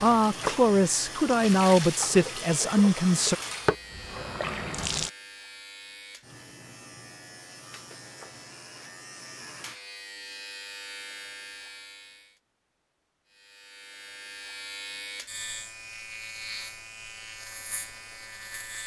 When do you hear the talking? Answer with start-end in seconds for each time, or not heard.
0.0-3.4.